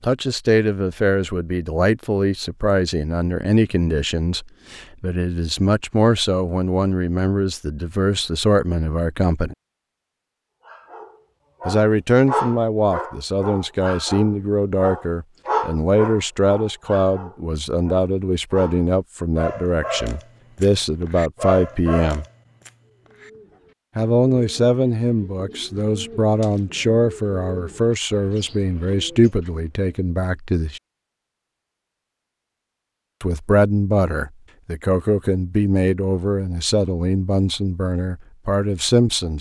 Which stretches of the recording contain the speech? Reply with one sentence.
You can hear the speech from 0.0 to 9.6 s, from 11.7 to 22.2 s, from 23.9 to 30.8 s and from 33.2 to 39.3 s.